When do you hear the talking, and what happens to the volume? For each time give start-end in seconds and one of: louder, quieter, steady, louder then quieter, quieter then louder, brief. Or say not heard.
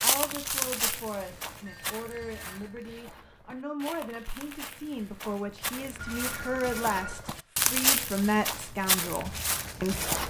0.0-10.1 louder.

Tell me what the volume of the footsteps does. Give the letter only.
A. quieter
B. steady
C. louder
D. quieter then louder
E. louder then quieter
D.